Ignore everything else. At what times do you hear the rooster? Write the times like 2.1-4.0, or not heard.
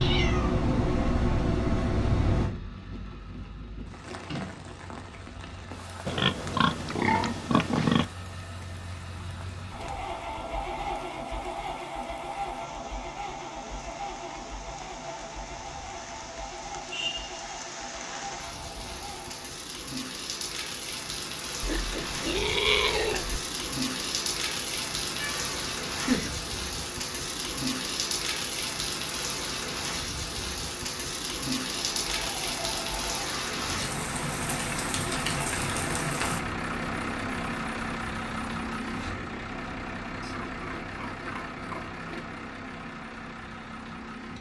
not heard.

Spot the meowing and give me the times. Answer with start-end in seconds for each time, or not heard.
0.0-2.5, 25.1-26.4.